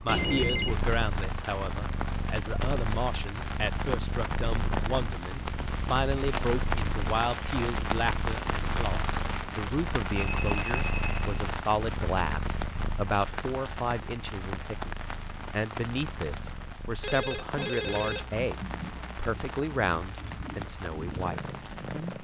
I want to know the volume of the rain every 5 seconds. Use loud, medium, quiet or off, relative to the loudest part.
loud, loud, loud, medium, medium.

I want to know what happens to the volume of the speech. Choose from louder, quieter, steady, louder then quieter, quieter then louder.
steady.